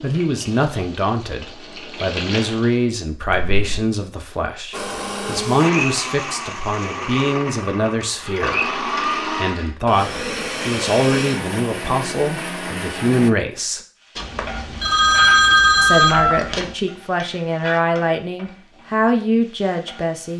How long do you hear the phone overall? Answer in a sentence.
You can hear the phone for 5 seconds altogether.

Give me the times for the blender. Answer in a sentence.
You can hear the blender from 4.7 to 13.3 s.